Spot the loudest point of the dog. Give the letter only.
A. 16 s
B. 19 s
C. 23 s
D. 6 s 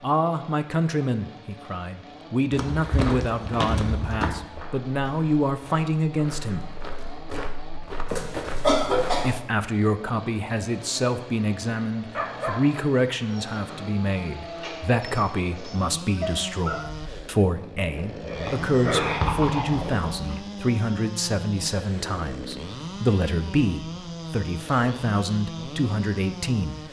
B.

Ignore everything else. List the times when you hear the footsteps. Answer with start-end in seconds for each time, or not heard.
2.5-9.3.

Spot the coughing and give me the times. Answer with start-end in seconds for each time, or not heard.
8.1-9.4.